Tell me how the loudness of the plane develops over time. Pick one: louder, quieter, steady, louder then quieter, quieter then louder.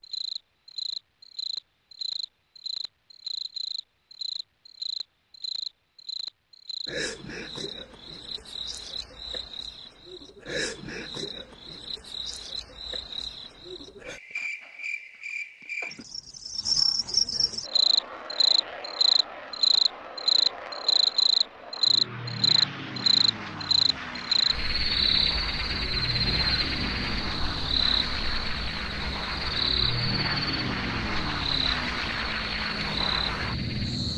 louder.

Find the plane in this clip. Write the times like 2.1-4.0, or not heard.
17.6-34.1.